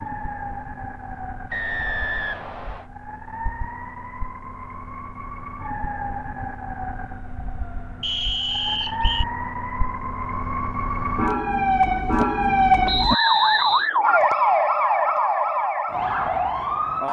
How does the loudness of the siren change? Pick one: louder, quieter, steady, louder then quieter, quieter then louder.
louder.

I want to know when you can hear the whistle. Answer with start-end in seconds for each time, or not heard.
1.5-2.9, 8.0-9.2, 12.8-13.9.